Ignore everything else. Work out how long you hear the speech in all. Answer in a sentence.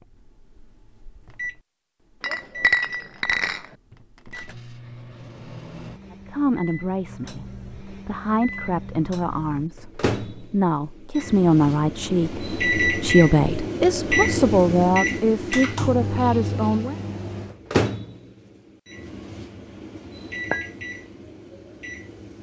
The speech can be heard for 11 seconds in total.